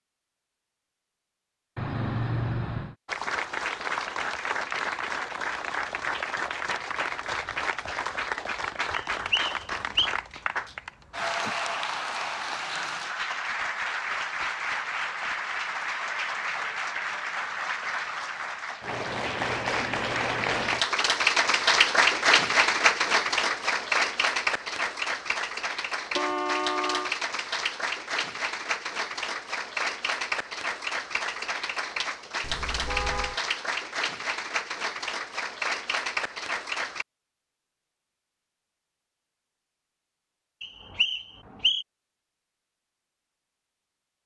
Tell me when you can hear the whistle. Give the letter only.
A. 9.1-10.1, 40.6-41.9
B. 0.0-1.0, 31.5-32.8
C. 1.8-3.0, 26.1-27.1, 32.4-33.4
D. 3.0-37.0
A.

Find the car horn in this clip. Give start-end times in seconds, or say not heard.
1.8-3.0, 26.1-27.1, 32.4-33.4.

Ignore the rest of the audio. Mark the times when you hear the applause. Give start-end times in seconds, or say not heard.
3.0-37.0.